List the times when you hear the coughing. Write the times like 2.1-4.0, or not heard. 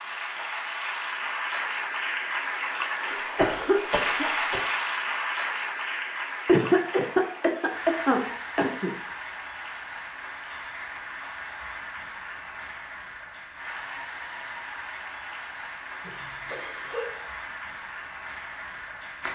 3.1-4.7, 6.5-8.9, 16.0-17.3.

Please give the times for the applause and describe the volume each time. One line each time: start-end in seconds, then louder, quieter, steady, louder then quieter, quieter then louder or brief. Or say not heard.
0.0-19.2 quieter.